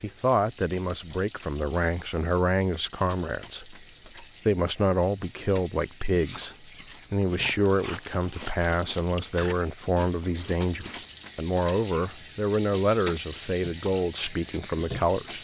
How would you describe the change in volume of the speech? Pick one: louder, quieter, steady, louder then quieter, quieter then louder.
steady.